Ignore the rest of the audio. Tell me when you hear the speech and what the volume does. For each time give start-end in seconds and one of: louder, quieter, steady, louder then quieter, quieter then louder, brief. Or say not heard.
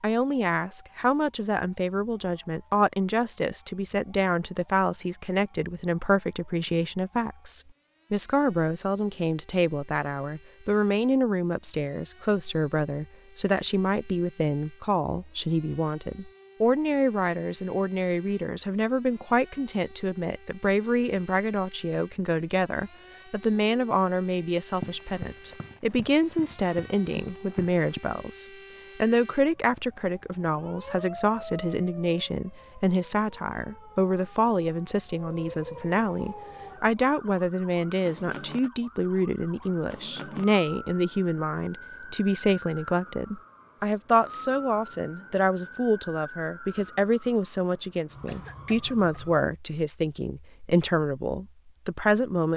0.0-52.5 steady.